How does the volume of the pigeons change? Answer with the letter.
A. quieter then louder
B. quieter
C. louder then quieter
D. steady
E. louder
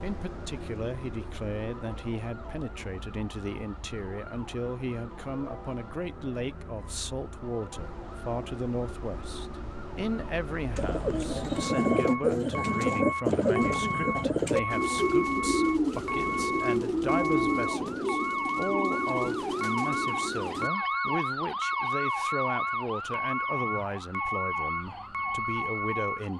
B.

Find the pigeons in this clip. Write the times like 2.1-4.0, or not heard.
10.8-21.2.